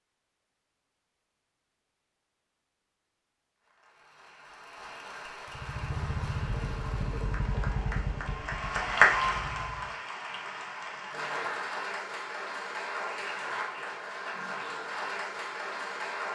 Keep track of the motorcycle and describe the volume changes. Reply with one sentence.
The volume of the motorcycle goes down.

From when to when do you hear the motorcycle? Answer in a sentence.
You can hear the motorcycle from 5.5 to 9.9 s.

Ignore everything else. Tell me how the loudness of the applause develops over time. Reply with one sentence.
The loudness of the applause goes up, then down.